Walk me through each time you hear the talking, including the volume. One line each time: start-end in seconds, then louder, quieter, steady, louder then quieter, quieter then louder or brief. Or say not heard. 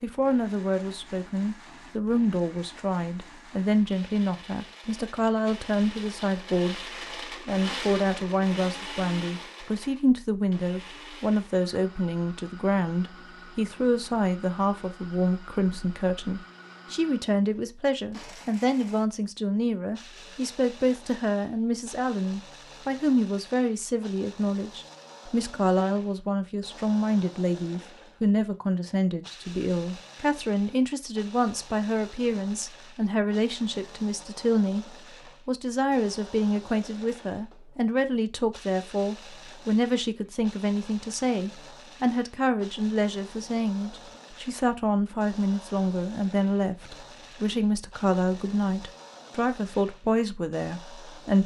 0.0-6.8 steady
7.5-51.4 steady.